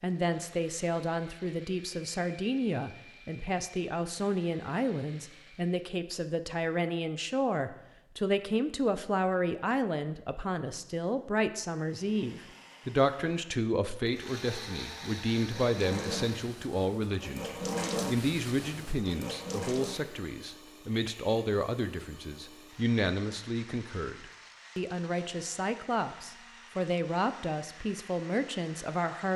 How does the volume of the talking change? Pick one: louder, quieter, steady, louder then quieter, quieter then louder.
steady.